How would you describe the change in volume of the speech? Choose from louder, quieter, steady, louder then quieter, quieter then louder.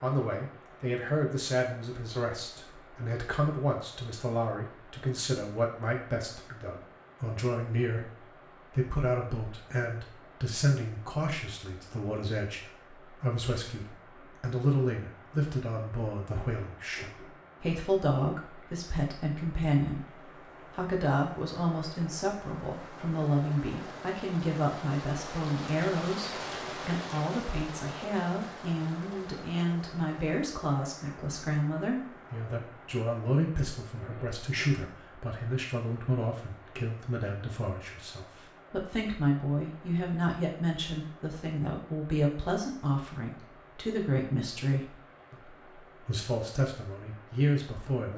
steady.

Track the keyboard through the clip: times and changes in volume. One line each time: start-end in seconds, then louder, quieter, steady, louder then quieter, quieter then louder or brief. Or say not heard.
not heard.